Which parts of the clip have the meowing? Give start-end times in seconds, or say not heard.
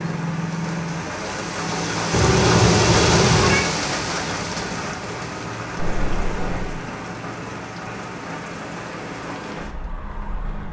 2.1-3.6, 5.8-6.8.